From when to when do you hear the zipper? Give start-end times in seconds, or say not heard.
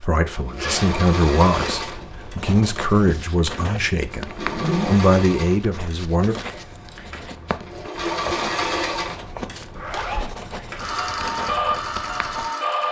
0.2-2.5, 4.3-5.1, 9.8-10.3.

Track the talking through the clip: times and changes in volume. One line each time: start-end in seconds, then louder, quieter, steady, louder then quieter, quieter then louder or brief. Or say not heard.
0.0-6.3 quieter then louder.